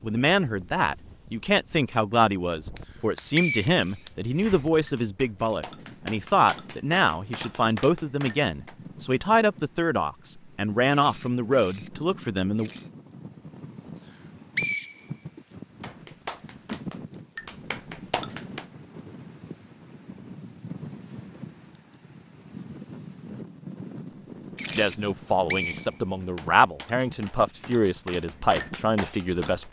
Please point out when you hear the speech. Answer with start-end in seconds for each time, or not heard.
0.0-12.7, 24.7-29.6.